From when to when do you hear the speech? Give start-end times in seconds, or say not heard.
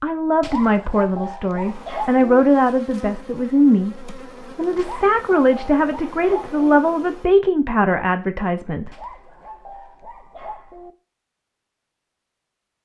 0.0-8.9.